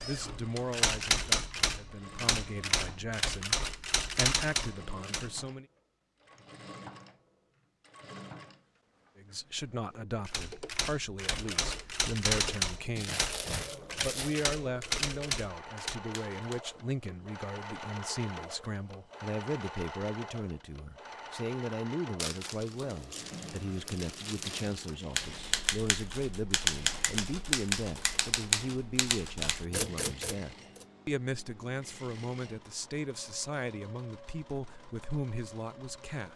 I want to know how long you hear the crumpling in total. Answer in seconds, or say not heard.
4 s.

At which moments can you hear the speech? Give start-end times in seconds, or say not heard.
0.0-5.7, 9.2-13.2, 13.9-36.3.